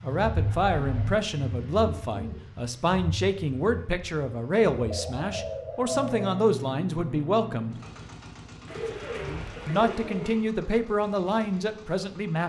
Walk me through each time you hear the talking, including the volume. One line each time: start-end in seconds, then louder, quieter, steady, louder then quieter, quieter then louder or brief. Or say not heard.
0.0-7.8 steady
9.7-12.4 brief.